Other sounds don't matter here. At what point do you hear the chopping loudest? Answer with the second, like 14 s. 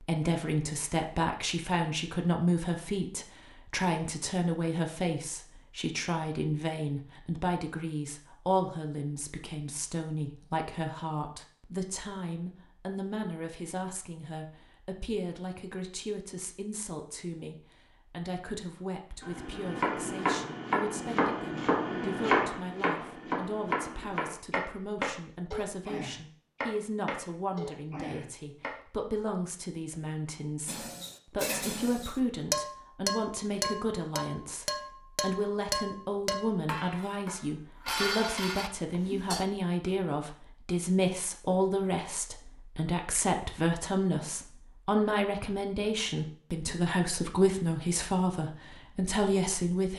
22 s.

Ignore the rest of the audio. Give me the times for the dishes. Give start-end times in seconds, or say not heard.
30.6-39.5.